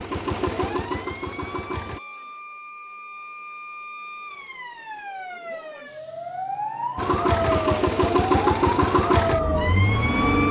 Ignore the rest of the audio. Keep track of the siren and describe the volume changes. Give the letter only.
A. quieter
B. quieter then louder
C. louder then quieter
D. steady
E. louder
E.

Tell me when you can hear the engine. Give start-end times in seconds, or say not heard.
0.0-2.0, 7.0-10.4.